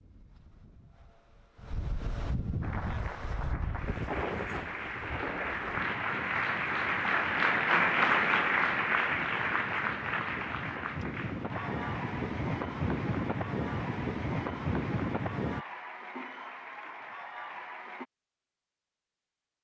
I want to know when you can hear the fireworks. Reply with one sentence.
The fireworks can't be heard in this clip.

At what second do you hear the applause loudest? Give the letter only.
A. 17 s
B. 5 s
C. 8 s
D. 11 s
C.